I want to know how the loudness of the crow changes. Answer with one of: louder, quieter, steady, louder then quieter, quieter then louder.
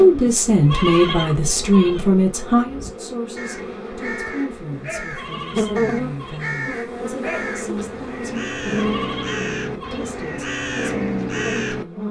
louder.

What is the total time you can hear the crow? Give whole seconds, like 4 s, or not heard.
9 s.